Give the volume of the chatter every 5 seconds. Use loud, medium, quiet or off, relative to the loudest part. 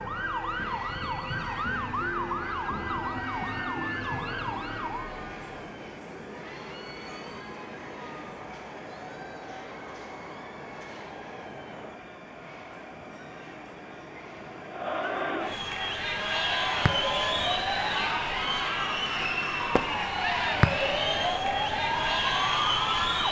quiet, quiet, quiet, loud, loud.